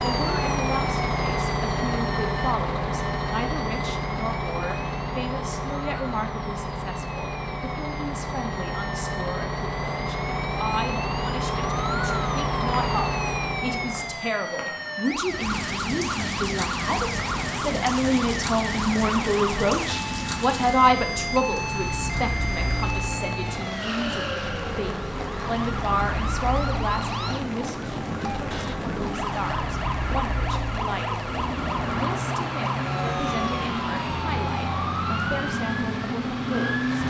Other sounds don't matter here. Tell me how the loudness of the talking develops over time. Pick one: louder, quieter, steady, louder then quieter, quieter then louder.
louder then quieter.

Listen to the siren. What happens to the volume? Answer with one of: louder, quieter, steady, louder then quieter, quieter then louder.
louder.